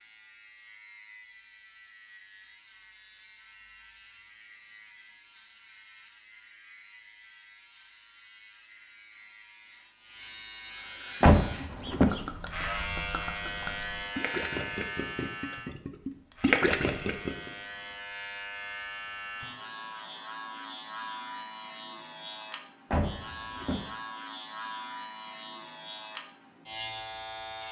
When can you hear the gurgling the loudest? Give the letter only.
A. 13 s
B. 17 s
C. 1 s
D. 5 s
B.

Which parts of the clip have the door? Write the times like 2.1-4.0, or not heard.
11.2-12.2, 22.9-23.9.